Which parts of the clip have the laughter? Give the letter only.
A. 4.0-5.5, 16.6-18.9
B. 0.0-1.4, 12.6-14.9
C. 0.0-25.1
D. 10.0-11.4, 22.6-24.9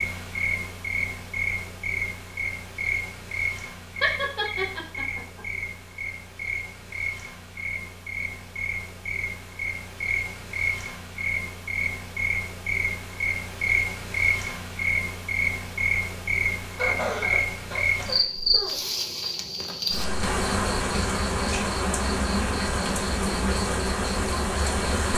A.